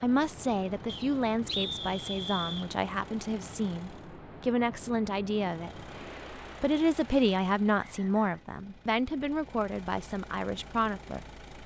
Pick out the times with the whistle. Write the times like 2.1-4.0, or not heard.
0.8-2.7, 7.8-8.4.